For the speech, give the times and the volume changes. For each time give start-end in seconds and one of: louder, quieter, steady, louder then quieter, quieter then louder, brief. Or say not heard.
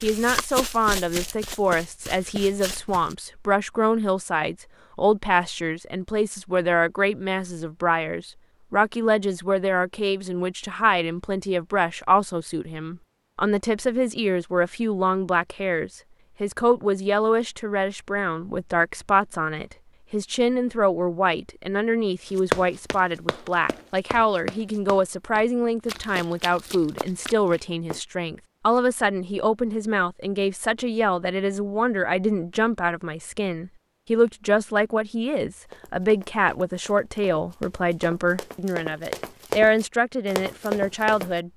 0.0-41.5 steady.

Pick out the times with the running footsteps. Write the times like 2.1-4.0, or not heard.
0.0-3.1, 22.4-28.0, 35.7-41.3.